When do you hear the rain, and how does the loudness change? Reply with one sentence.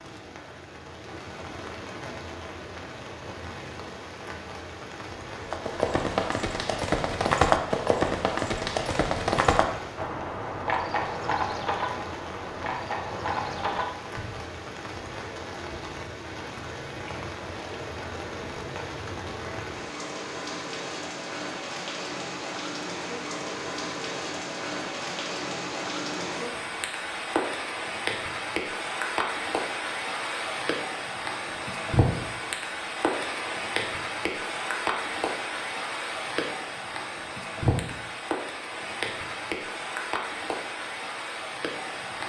You can hear the rain from 0.0 to 42.2 s, getting louder.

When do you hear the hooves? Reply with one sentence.
The hooves can be heard from 5.4 to 14.4 s.